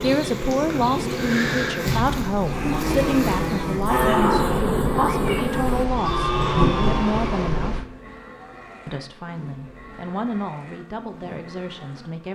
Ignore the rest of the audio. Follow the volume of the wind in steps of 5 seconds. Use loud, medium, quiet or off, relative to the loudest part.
loud, loud, off.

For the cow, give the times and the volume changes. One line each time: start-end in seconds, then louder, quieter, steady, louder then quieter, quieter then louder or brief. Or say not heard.
2.4-12.1 quieter.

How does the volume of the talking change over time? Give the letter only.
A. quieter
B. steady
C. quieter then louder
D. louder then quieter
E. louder
A.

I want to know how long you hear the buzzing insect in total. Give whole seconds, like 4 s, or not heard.
12 s.